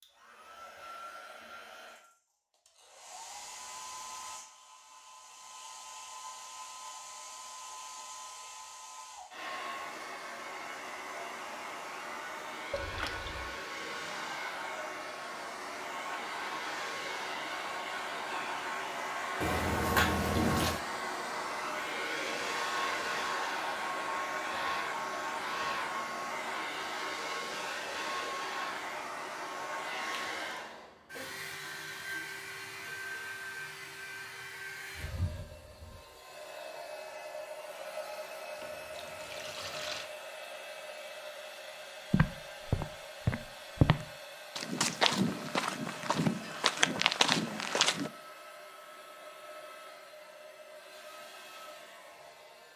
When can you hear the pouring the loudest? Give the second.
20 s.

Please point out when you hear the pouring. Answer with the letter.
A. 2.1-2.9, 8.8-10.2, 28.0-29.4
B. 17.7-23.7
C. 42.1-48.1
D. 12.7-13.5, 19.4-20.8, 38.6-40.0
D.